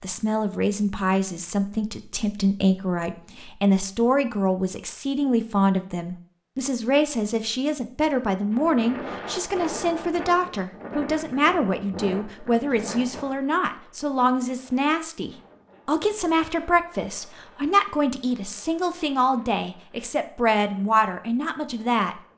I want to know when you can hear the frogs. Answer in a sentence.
You can't hear the frogs here.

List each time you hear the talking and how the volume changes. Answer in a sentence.
You can hear the talking from 0.0 to 22.1 s, at a steady volume.